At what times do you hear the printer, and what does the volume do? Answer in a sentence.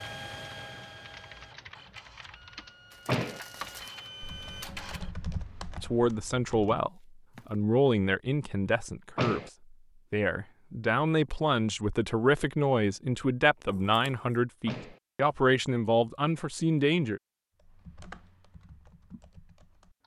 You can hear the printer from 0.0 to 5.2 s, getting quieter then louder.